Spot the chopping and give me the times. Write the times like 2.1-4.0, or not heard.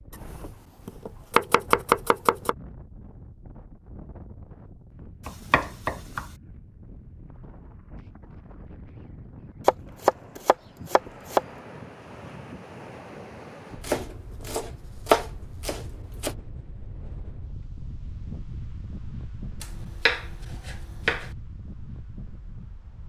0.1-2.5, 5.2-6.2, 9.7-11.4, 13.8-16.4, 19.6-21.2.